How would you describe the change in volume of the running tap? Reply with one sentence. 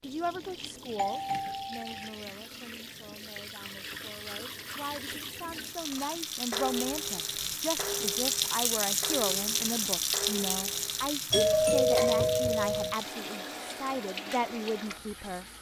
The volume of the running tap goes up, then down.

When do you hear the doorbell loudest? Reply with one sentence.
The loudest moment of the doorbell is at 12 seconds.